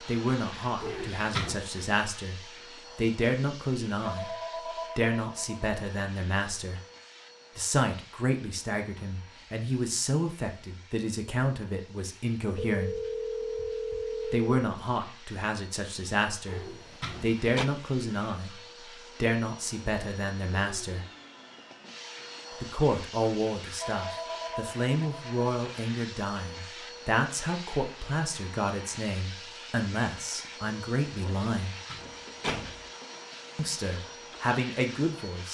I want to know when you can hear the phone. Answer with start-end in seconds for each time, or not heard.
4.0-5.8, 12.6-14.5, 23.8-25.4.